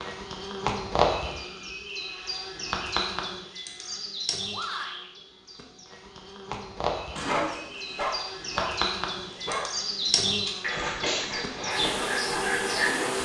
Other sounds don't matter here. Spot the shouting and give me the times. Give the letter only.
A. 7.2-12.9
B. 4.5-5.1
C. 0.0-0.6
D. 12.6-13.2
B.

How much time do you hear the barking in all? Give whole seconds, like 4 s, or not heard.
6 s.